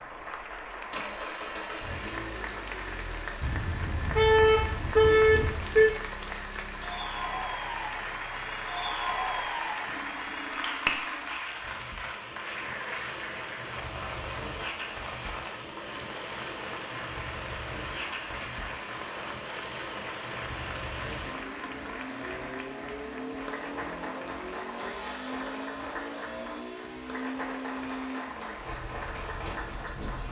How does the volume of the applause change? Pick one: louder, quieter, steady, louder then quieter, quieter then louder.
louder then quieter.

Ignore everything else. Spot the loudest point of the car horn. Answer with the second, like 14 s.
5 s.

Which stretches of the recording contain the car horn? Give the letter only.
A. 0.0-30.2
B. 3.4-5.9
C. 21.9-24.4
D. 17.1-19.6
B.